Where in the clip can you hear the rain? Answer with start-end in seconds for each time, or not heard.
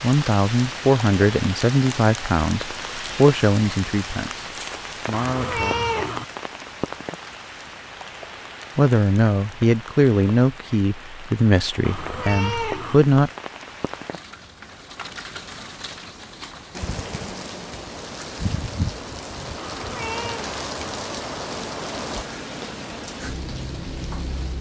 0.0-24.5.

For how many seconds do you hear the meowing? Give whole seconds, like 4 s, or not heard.
3 s.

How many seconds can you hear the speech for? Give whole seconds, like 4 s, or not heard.
11 s.